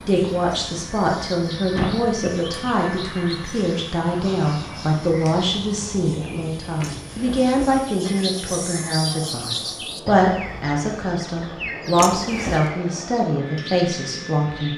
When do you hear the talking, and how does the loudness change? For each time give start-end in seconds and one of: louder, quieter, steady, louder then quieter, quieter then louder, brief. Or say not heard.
0.1-14.7 steady.